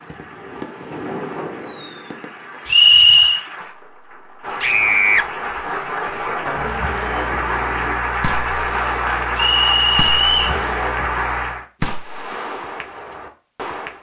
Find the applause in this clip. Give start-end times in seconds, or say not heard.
0.0-11.7.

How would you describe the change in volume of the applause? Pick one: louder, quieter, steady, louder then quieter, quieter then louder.
louder.